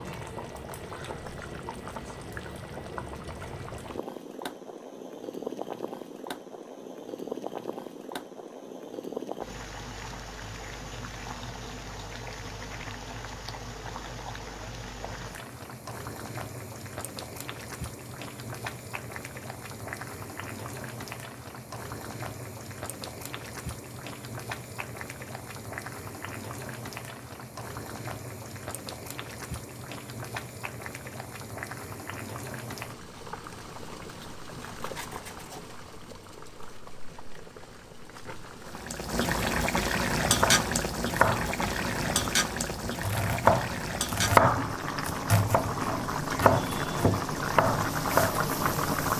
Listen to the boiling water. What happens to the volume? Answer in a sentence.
The loudness of the boiling water goes up.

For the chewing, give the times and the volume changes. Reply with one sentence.
You can't hear the chewing here.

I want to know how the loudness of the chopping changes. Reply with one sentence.
The loudness of the chopping goes up, then down.